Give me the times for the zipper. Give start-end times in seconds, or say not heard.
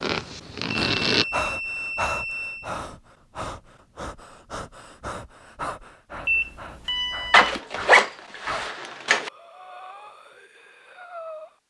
0.0-1.2, 7.3-9.3.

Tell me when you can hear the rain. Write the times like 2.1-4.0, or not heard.
not heard.